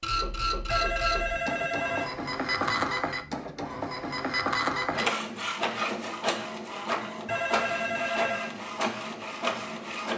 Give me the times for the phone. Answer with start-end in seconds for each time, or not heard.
0.7-2.8, 7.2-8.6.